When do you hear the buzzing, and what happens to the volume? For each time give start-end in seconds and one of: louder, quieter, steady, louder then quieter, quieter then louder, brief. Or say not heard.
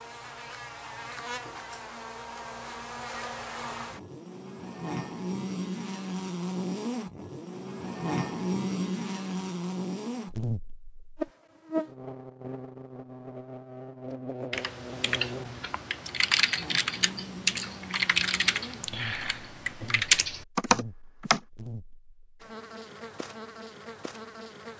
0.0-24.7 louder then quieter.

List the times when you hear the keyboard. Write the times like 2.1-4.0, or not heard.
14.5-21.4.